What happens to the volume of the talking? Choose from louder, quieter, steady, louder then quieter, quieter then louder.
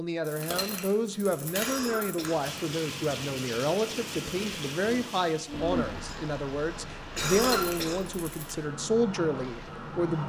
steady.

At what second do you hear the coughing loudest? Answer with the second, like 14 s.
7 s.